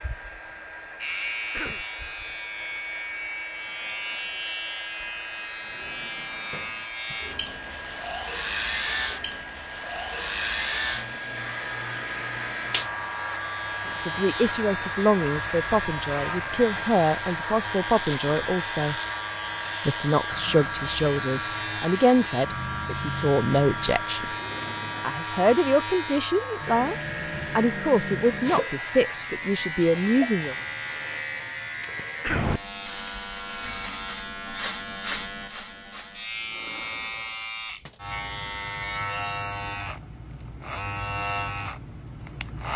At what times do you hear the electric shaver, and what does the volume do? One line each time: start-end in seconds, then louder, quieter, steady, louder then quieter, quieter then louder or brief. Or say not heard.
0.0-42.7 steady.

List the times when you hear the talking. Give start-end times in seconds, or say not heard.
13.8-18.9, 19.9-24.3, 25.0-30.6.